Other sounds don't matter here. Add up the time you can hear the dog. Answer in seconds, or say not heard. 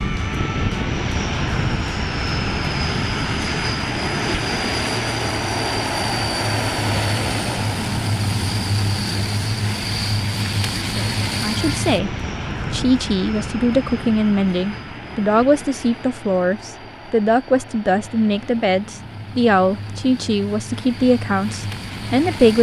not heard.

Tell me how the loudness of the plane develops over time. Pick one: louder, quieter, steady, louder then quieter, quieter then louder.
quieter.